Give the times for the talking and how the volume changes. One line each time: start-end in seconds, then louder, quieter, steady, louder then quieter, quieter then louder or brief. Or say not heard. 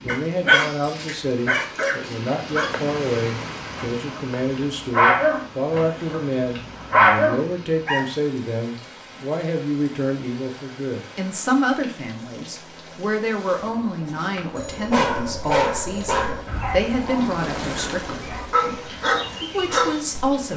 0.0-20.5 steady.